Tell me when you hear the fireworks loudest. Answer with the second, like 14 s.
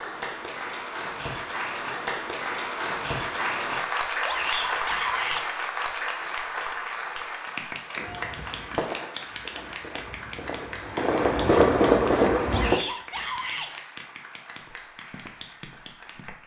12 s.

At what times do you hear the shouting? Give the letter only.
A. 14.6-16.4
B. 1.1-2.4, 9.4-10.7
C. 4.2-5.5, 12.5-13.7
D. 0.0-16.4
C.